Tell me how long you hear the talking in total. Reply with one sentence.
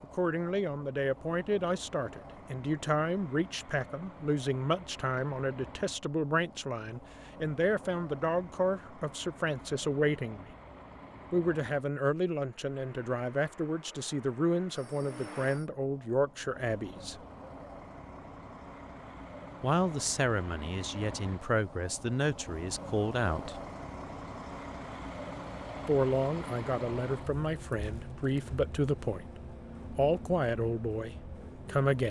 You can hear the talking for 26 seconds altogether.